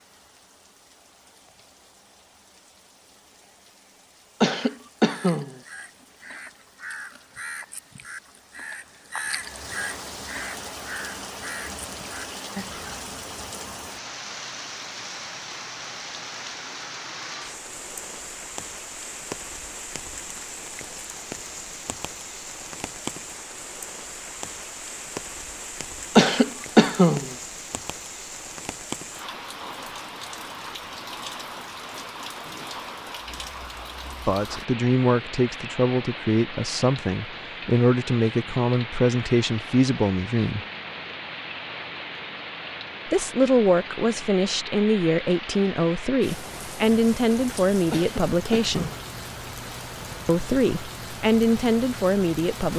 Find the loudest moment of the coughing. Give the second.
27 s.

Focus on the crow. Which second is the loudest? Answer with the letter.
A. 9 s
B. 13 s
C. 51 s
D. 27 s
A.